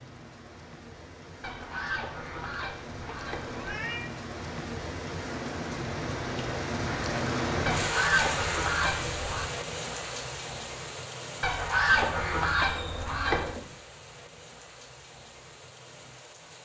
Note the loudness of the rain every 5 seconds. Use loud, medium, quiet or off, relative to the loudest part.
medium, loud, medium, quiet.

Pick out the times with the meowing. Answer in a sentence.
The meowing can be heard from 3.0 to 4.1 s.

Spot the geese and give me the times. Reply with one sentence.
The geese can be heard from 1.4 to 3.8 s, from 7.7 to 9.5 s and from 11.4 to 13.6 s.